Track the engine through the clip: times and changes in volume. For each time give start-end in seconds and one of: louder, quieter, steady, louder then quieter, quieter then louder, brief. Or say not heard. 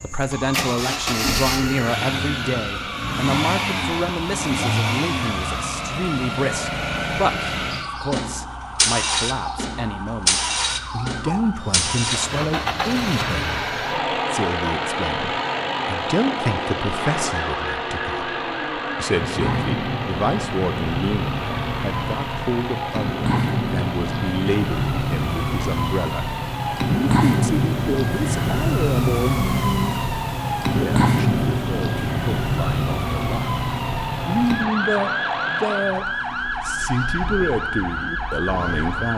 0.0-39.1 quieter.